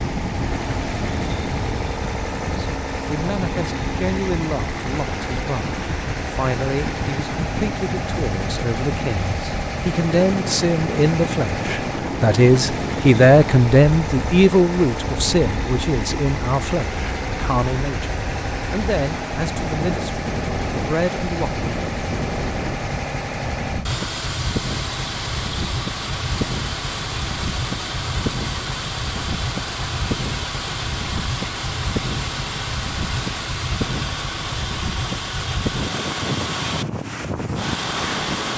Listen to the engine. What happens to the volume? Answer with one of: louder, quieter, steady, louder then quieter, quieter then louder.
steady.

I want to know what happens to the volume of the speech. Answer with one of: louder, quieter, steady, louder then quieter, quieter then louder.
louder then quieter.